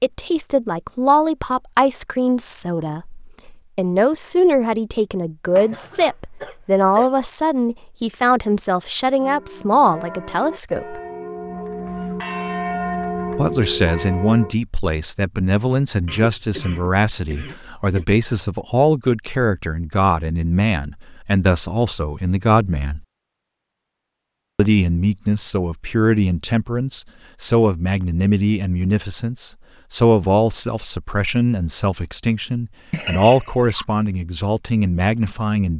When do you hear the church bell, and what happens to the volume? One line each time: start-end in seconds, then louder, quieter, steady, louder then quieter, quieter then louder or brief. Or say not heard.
9.2-14.6 louder.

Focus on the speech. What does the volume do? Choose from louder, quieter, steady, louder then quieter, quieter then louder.
steady.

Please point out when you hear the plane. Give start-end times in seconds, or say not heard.
not heard.